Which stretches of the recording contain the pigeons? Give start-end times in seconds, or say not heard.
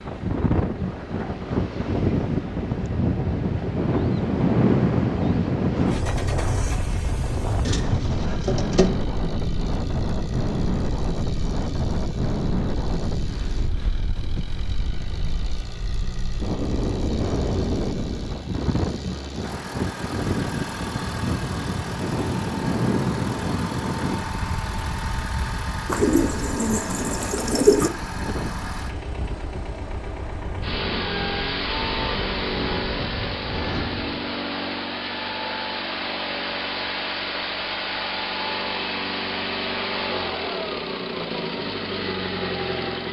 7.6-8.9, 25.9-27.9.